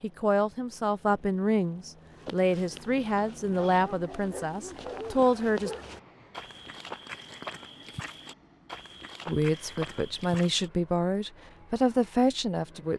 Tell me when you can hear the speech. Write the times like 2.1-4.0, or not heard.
0.0-5.7, 9.2-12.9.